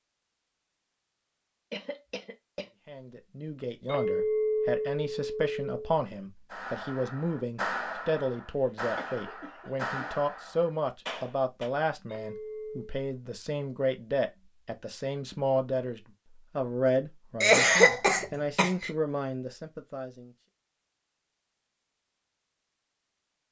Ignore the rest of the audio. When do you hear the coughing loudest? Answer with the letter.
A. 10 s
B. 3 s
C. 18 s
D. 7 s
C.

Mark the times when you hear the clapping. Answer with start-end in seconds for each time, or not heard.
6.5-11.7.